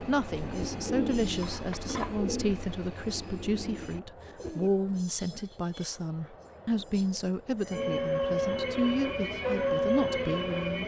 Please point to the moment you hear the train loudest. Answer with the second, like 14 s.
10 s.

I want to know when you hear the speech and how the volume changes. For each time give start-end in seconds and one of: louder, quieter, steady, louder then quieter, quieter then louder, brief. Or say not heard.
0.1-10.8 steady.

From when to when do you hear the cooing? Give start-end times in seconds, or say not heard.
0.0-4.7.